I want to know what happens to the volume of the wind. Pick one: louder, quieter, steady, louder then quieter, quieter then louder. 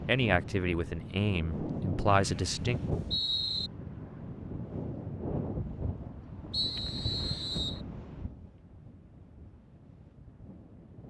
quieter.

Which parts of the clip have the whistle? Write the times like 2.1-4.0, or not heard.
2.0-3.7, 6.5-7.8.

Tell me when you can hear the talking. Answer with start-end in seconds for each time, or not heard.
0.1-2.8.